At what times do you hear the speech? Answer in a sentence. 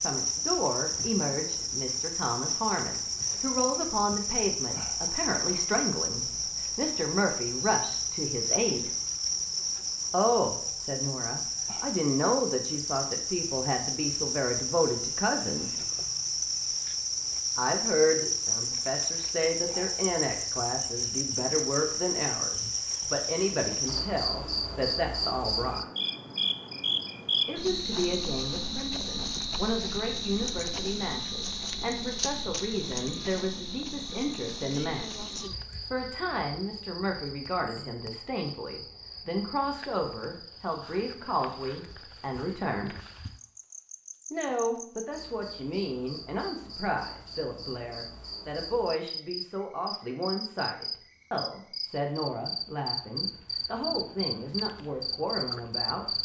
The speech can be heard from 0.0 to 8.9 s, from 10.1 to 15.8 s, from 17.6 to 25.9 s, from 27.4 to 35.2 s, from 35.9 to 43.0 s and from 44.3 to 56.0 s.